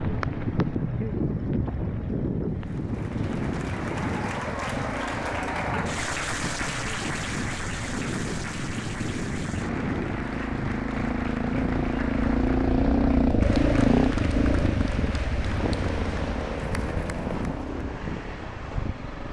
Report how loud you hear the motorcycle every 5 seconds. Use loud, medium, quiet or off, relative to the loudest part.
quiet, quiet, loud, medium.